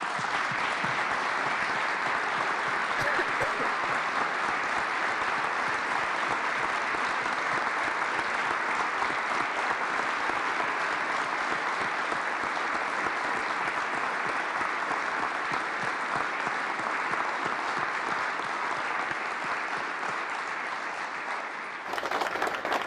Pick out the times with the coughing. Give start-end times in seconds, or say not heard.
3.0-3.6.